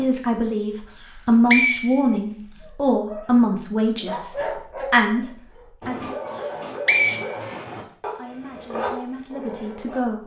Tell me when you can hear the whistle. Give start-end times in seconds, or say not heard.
0.9-2.6, 6.3-7.8.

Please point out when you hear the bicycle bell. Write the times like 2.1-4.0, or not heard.
not heard.